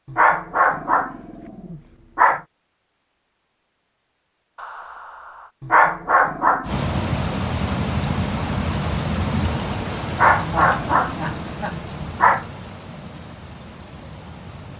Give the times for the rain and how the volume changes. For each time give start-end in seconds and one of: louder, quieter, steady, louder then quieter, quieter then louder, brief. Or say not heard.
6.7-14.7 quieter.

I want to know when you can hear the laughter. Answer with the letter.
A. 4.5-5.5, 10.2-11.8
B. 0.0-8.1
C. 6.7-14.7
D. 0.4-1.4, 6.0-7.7
A.